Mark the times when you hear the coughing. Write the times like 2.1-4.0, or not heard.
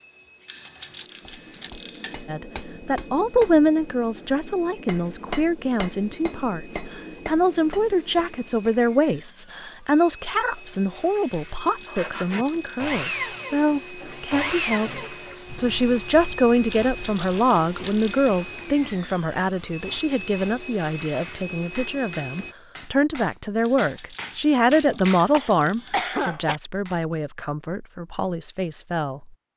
24.9-26.6.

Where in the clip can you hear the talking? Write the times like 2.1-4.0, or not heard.
2.2-29.3.